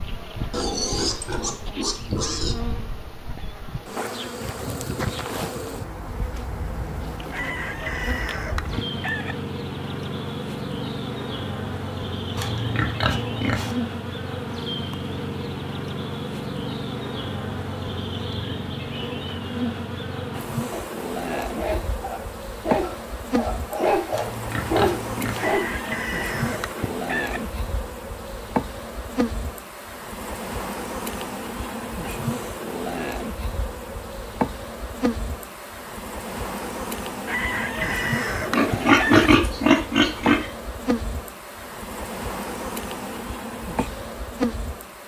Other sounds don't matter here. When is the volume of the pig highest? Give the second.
39 s.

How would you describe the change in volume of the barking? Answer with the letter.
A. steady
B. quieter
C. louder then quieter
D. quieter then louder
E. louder
E.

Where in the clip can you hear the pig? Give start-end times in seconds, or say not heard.
0.5-2.5, 12.3-13.8, 24.1-25.5, 38.5-40.5.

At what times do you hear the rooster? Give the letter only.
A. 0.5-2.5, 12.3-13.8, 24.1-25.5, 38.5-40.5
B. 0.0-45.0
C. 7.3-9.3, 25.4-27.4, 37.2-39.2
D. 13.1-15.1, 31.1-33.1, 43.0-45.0
C.